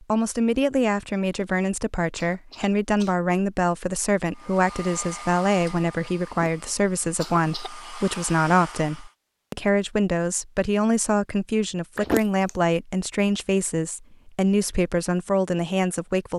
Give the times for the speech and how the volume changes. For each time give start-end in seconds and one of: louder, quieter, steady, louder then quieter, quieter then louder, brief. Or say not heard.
0.0-16.3 steady.